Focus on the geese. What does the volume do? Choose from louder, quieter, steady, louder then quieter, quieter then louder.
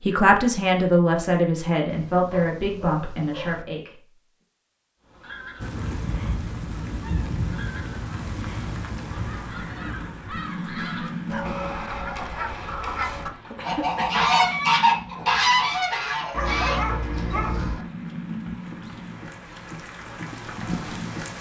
louder.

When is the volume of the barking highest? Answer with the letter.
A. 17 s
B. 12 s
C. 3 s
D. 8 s
A.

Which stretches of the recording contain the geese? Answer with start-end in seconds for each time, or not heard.
5.0-16.9.